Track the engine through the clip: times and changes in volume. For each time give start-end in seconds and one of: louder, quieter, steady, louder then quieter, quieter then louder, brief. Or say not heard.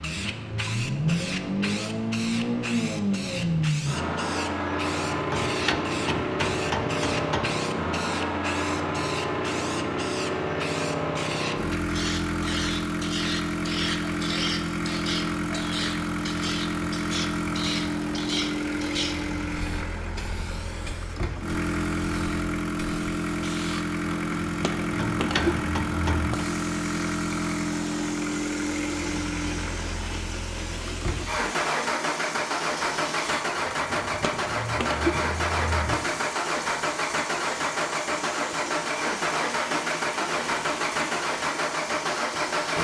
0.0-42.7 steady.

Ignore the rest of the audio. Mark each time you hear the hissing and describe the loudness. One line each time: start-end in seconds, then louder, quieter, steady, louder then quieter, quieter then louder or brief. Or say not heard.
0.0-42.7 steady.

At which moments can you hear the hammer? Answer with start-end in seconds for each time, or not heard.
5.3-7.6, 24.9-26.4.